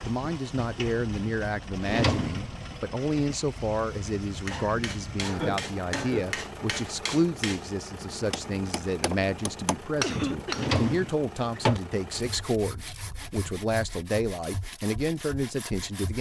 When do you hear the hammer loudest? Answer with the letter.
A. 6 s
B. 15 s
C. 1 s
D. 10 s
D.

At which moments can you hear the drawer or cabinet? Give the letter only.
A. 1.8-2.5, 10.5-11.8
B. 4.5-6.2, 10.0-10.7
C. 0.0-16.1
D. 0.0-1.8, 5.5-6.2
A.